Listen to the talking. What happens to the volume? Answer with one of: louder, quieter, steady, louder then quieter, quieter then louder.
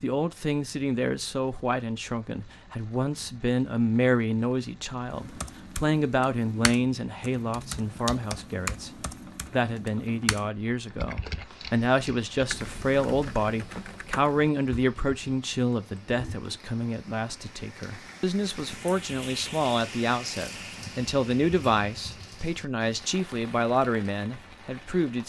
steady.